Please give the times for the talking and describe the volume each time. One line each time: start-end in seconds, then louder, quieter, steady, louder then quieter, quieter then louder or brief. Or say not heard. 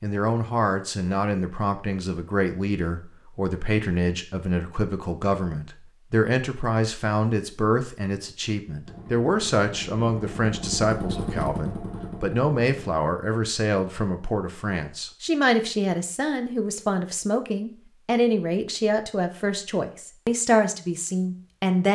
0.0-21.9 steady.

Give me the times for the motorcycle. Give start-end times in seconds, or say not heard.
8.8-12.9.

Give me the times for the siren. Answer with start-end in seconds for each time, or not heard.
not heard.